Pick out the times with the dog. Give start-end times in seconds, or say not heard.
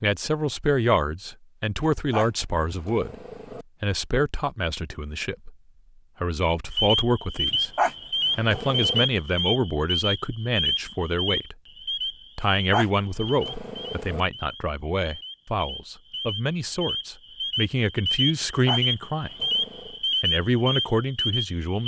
2.1-3.6, 7.8-9.1, 12.7-14.2, 18.6-19.9.